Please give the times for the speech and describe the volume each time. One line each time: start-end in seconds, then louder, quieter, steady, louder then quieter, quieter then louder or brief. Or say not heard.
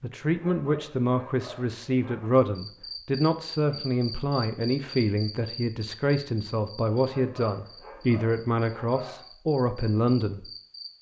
0.0-10.5 steady.